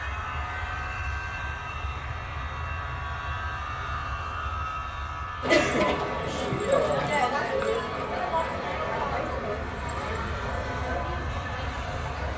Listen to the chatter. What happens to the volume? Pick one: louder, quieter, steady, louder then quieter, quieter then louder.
quieter.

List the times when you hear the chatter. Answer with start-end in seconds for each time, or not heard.
5.4-12.3.